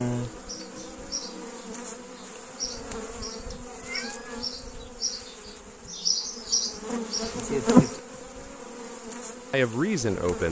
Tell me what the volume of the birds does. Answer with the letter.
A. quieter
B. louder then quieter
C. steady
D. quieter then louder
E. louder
E.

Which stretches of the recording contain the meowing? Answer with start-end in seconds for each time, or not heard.
3.6-4.4.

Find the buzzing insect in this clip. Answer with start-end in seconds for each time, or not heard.
0.0-10.4.